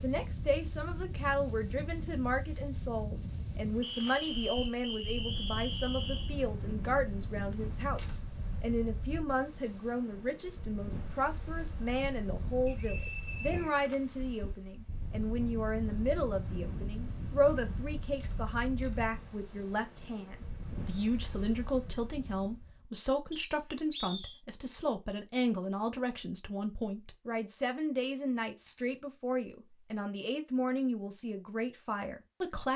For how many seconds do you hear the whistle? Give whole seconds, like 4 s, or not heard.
5 s.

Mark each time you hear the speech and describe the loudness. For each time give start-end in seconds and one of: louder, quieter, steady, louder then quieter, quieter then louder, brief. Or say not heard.
0.0-32.7 steady.